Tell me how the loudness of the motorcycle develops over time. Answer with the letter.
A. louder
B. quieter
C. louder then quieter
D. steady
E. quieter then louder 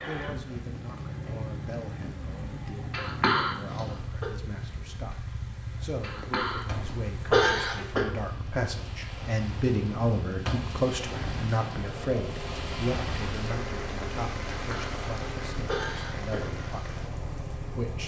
D.